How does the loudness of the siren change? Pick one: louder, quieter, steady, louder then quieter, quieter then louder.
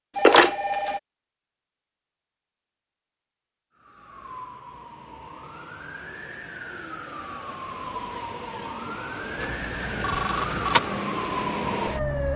louder.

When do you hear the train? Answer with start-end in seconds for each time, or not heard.
not heard.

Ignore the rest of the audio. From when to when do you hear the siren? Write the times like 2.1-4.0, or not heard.
3.8-12.3.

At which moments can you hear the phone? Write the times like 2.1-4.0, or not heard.
0.1-1.0, 9.4-10.8.